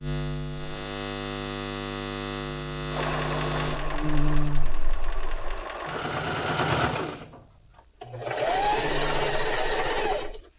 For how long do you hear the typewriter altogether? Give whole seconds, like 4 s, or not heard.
not heard.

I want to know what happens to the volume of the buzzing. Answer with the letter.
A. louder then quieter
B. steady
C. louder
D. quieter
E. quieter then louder
E.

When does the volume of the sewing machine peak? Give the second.
9 s.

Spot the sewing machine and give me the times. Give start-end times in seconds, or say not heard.
2.9-10.4.